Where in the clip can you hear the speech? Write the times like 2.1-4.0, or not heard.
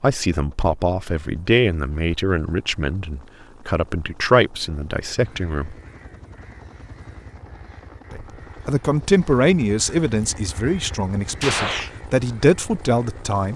0.0-5.8, 8.1-13.5.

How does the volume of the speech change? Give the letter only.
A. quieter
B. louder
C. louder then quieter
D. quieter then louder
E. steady
E.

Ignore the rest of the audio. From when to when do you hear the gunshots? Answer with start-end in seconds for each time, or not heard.
11.4-11.9.